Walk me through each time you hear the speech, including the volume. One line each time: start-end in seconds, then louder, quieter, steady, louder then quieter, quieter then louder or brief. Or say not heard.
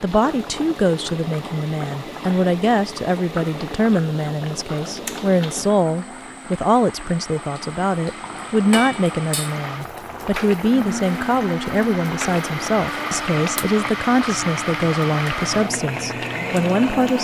0.0-17.1 steady.